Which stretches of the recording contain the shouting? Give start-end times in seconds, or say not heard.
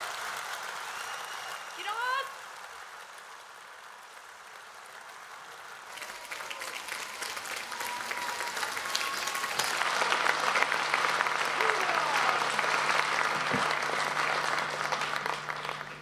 1.8-2.3, 11.6-12.4.